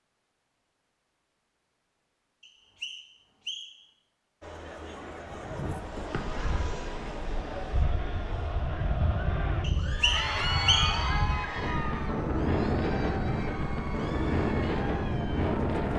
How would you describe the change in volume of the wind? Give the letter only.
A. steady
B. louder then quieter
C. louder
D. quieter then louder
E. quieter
C.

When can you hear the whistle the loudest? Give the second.
11 s.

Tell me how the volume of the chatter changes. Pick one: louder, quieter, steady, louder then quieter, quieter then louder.
louder then quieter.